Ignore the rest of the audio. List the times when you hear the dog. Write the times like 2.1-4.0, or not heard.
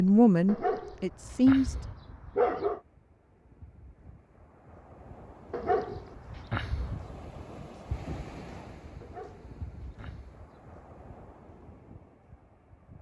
0.5-2.8, 5.5-7.0, 9.0-10.4.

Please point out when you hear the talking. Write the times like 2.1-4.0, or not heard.
0.0-1.8.